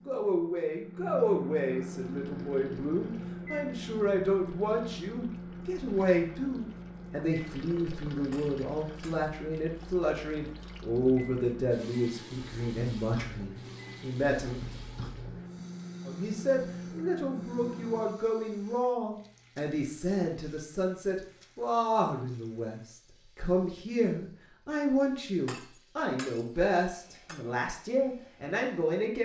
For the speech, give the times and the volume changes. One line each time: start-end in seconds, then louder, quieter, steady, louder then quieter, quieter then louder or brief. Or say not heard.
0.1-14.6 steady
16.1-29.2 steady.